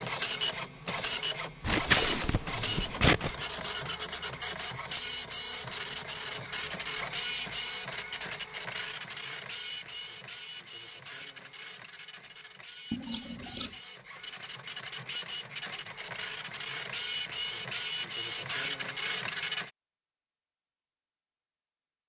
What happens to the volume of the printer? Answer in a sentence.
The loudness of the printer goes down, then up.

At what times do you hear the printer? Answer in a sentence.
You can hear the printer from 0.0 to 19.7 s.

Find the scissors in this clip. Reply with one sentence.
The scissors can be heard from 1.6 to 3.4 s and from 12.9 to 13.8 s.